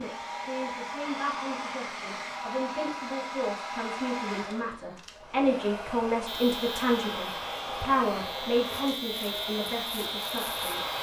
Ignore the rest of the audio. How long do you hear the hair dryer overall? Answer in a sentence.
You can hear the hair dryer for 11 seconds altogether.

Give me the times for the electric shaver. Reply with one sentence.
The electric shaver can be heard from 6.2 to 10.9 s.